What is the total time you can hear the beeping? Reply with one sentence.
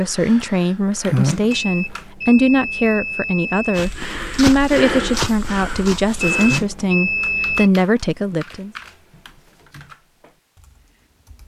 The beeping can be heard for 4 seconds in total.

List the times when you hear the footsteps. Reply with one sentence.
The footsteps can be heard from 3.8 to 6.7 s.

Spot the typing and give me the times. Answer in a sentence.
You can hear the typing from 0.0 to 2.0 s and from 6.5 to 11.4 s.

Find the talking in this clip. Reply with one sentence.
The talking can be heard from 0.0 to 8.7 s.